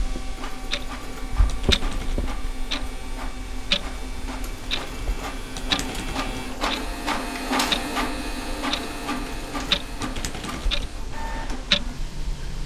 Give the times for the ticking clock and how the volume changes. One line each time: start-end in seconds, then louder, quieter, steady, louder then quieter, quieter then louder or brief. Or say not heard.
0.0-12.6 steady.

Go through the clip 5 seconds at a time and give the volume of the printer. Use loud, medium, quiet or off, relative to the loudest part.
medium, loud, medium.